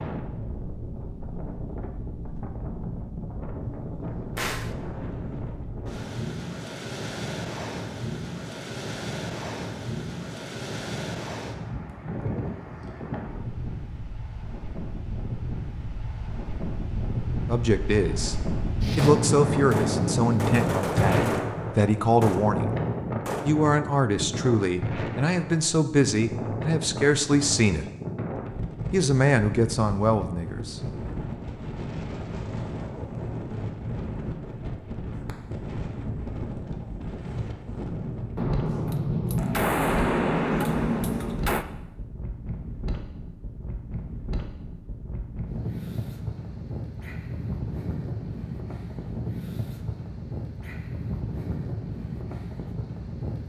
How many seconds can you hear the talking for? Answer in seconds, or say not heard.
11 s.